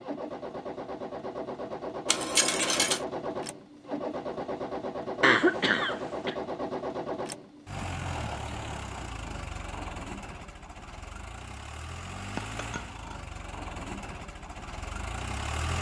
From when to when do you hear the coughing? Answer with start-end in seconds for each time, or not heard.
5.2-6.3.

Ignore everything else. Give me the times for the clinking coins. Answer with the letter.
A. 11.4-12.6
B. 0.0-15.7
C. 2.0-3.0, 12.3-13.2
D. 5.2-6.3
C.